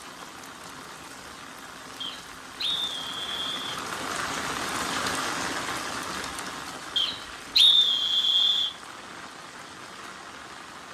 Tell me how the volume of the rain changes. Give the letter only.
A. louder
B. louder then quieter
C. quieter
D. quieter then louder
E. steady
B.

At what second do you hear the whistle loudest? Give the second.
8 s.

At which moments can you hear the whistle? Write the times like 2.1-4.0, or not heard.
2.0-3.8, 7.0-8.7.